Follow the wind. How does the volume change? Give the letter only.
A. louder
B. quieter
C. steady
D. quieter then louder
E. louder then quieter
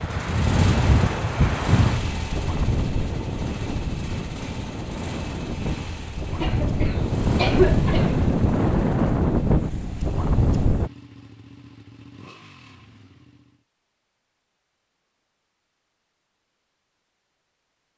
D.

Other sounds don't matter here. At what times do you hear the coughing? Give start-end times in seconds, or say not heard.
6.4-8.3.